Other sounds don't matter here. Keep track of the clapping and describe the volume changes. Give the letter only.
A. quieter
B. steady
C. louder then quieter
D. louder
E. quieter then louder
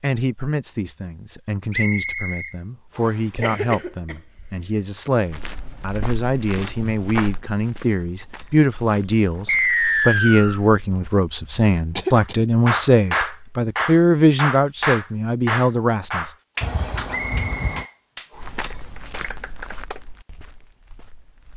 A.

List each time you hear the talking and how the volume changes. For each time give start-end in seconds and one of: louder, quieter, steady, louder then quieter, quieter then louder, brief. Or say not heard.
0.0-16.3 louder.